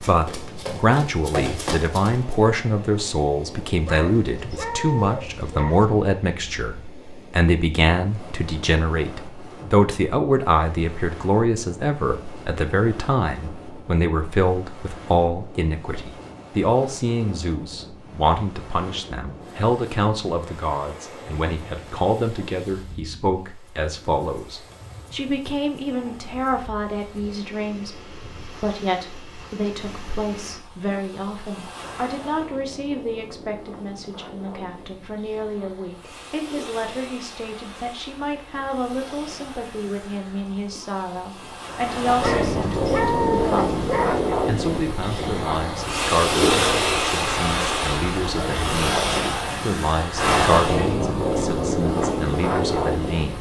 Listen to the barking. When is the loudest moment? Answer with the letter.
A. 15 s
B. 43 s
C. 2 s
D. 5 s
B.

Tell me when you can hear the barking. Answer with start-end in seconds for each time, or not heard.
3.9-5.8, 42.2-44.2.